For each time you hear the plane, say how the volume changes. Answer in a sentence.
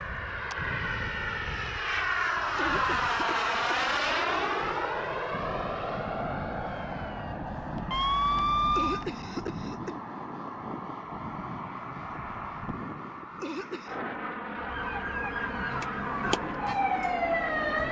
You can hear the plane from 0.0 to 17.8 s, getting quieter.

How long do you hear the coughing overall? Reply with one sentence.
You can hear the coughing for 3 seconds altogether.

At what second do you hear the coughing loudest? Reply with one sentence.
The loudest moment of the coughing is at 9 seconds.